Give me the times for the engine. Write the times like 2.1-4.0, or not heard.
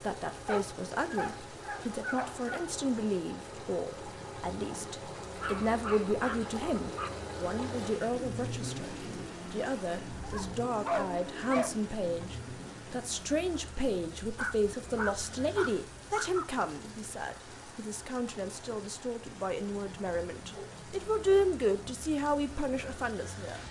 0.0-13.1.